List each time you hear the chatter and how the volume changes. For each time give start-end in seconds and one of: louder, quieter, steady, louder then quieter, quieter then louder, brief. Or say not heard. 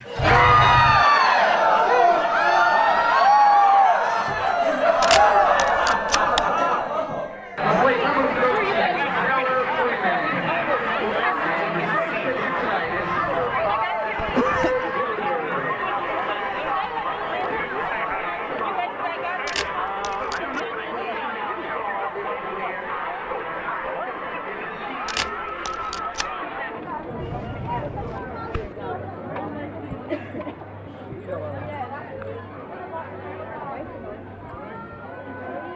0.1-35.7 quieter.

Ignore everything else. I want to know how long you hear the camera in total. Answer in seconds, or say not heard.
4 s.